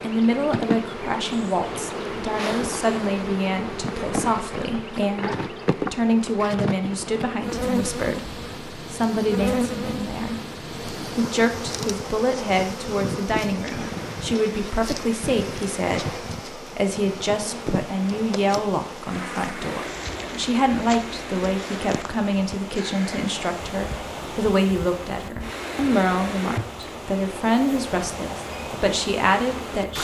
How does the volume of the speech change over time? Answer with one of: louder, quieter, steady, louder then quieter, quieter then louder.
steady.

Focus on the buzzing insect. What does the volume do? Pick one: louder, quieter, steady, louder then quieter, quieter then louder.
quieter.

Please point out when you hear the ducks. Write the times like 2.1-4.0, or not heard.
not heard.